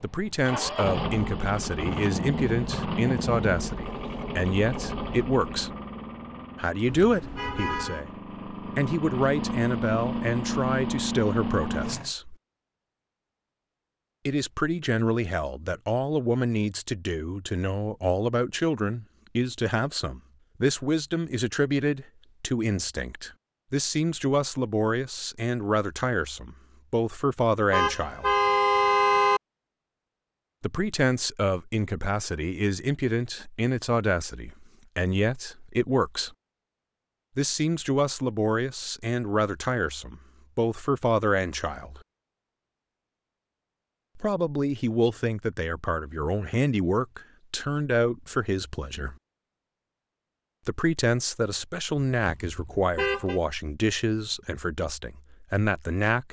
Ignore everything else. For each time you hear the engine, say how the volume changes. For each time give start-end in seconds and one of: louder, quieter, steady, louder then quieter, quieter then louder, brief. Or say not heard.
0.0-12.1 quieter then louder.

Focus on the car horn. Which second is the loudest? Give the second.
29 s.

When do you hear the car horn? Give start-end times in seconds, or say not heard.
6.8-8.1, 27.7-29.4, 52.1-53.4.